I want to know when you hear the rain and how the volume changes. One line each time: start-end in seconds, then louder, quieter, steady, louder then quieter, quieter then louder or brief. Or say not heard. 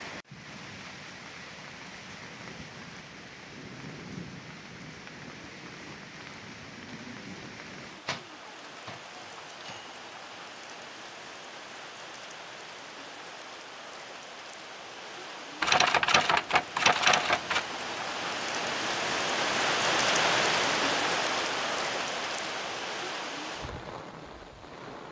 0.0-25.0 louder.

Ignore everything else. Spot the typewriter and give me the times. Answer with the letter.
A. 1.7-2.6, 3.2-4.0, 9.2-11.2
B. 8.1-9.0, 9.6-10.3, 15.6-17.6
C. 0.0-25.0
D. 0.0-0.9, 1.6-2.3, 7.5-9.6
B.